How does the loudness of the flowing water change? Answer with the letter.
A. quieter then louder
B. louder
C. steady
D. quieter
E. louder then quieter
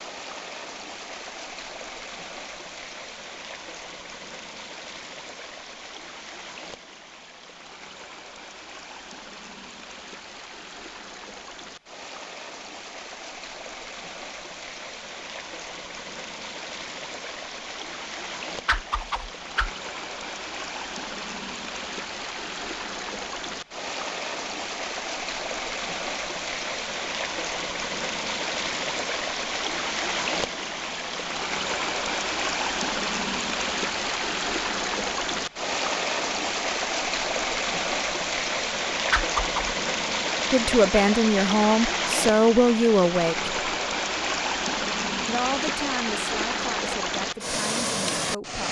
B.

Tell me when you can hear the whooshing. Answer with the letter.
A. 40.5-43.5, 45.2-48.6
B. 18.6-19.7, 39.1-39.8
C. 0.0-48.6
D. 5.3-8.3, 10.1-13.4
B.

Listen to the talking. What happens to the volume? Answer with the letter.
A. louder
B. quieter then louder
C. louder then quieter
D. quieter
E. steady
D.